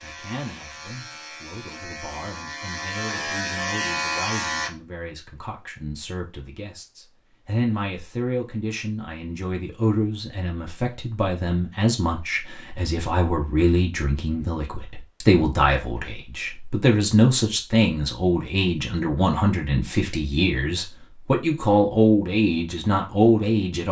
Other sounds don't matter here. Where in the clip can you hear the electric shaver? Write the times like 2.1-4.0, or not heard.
0.0-4.7.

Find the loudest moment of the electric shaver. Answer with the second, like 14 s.
4 s.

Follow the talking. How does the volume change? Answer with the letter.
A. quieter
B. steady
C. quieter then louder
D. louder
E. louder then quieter
D.